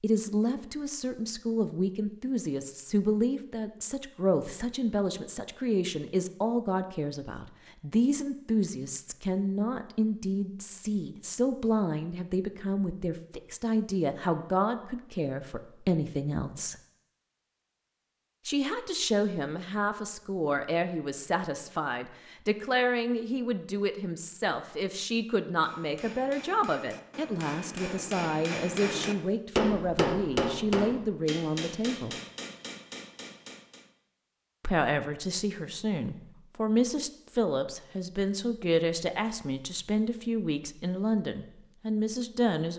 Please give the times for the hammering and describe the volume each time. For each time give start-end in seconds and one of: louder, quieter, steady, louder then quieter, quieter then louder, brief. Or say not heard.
25.6-33.9 louder then quieter.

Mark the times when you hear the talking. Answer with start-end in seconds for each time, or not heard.
0.0-16.8, 18.4-32.1, 34.6-42.7.